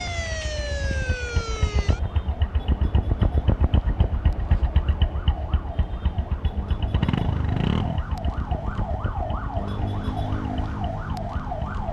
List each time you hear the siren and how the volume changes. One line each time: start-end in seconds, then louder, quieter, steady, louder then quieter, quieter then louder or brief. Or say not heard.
0.0-11.8 quieter then louder.